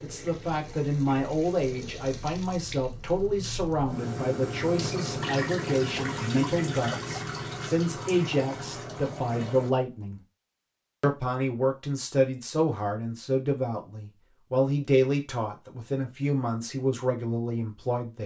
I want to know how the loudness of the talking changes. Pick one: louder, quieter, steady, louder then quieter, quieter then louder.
steady.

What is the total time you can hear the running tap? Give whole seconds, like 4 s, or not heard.
10 s.